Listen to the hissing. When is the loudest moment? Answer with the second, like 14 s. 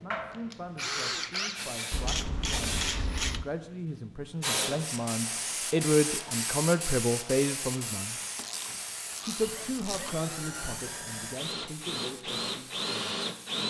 5 s.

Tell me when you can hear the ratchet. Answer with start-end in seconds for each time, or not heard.
1.9-3.5, 8.3-10.2.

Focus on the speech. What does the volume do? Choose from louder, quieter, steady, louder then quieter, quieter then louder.
louder then quieter.